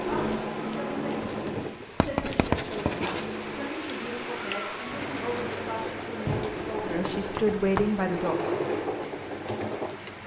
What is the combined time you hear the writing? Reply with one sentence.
You can hear the writing for 3 seconds altogether.